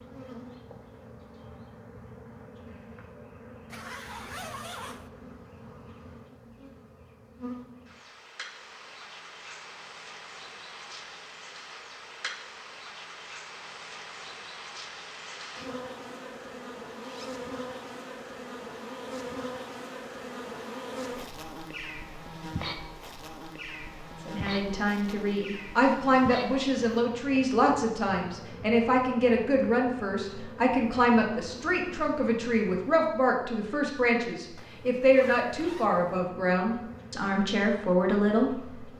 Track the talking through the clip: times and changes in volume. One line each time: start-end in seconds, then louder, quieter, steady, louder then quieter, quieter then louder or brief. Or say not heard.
24.2-38.9 steady.